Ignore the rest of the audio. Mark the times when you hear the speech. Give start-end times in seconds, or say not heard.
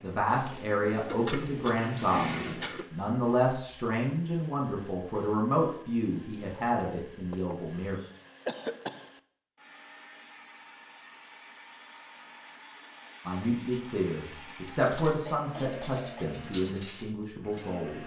0.0-8.0, 13.2-18.0.